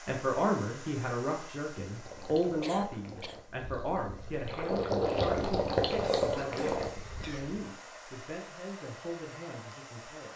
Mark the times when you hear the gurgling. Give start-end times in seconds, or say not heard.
1.9-7.4.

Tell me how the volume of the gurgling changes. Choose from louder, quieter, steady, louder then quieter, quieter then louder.
quieter then louder.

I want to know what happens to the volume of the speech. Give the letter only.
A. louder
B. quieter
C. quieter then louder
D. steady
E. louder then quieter
B.